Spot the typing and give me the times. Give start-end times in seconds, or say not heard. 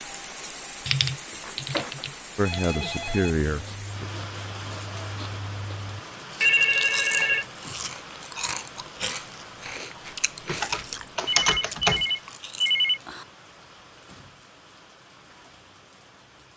0.8-2.6, 10.4-12.1.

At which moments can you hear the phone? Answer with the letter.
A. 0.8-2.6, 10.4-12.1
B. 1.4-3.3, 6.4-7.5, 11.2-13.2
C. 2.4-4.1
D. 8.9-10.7
B.